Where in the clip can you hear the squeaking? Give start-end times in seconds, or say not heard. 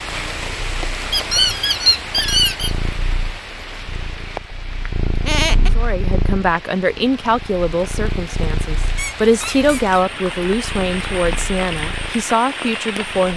1.1-2.7, 5.2-5.7, 8.9-10.1.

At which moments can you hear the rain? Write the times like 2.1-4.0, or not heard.
0.0-13.3.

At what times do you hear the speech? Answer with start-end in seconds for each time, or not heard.
5.8-13.3.